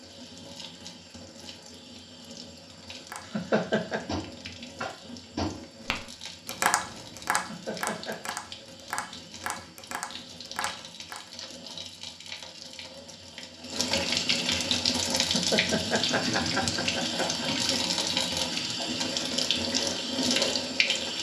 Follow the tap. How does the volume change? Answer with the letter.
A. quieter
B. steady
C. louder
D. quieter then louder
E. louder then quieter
C.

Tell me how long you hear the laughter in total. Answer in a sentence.
The laughter can be heard for 4 seconds in total.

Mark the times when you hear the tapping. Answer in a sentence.
The tapping can be heard from 3.0 to 11.2 s.